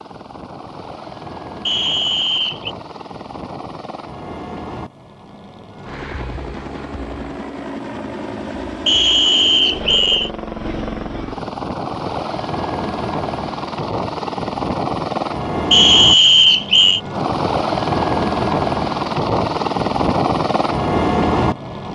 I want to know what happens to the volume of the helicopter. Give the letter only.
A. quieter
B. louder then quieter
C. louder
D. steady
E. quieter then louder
C.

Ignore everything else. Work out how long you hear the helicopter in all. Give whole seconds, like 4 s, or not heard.
22 s.